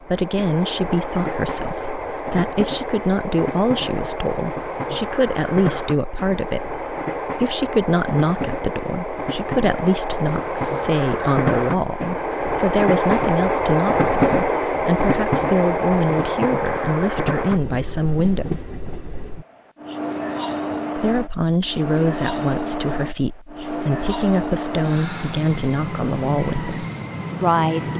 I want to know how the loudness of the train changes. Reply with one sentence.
The volume of the train goes up, then down.